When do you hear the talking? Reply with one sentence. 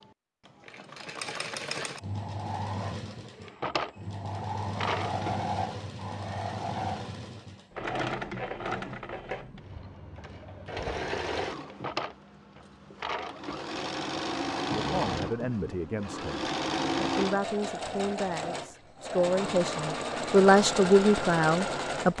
You can hear the talking from 14.7 to 22.1 s.